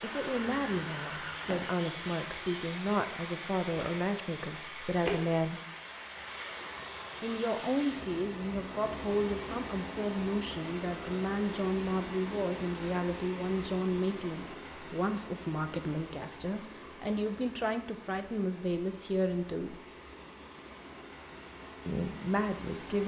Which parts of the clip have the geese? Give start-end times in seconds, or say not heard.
0.0-1.8.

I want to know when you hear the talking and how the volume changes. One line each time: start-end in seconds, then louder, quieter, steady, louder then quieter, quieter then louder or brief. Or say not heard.
0.0-5.6 steady
7.2-19.8 steady
21.9-23.0 brief.